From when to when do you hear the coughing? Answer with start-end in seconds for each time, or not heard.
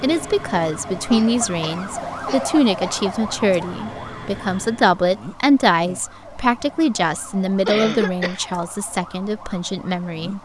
1.1-3.4, 7.7-8.6.